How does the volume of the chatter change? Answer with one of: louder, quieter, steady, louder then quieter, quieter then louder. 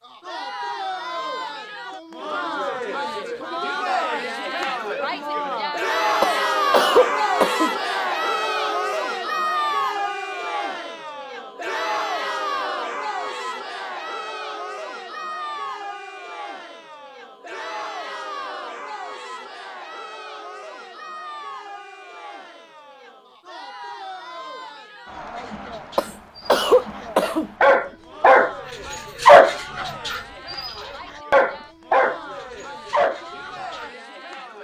quieter.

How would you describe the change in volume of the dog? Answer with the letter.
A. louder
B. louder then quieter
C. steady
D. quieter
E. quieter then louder
B.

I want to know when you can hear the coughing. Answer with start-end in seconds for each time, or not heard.
6.2-7.7, 25.9-27.5.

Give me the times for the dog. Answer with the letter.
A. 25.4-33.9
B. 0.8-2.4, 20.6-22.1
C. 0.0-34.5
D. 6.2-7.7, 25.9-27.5
A.